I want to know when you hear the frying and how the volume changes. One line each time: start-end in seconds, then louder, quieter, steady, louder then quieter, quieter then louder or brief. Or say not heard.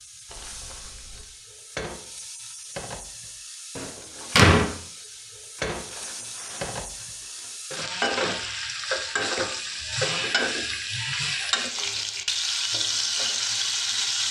0.0-14.2 louder.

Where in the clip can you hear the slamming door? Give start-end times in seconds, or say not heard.
3.8-4.7.